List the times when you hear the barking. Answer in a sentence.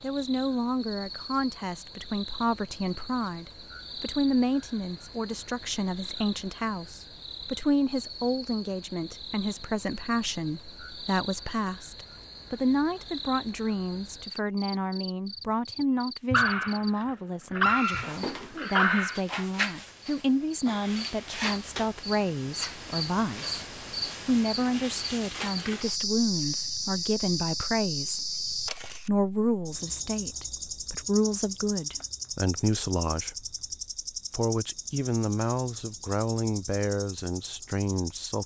You can hear the barking from 16.3 to 19.2 s.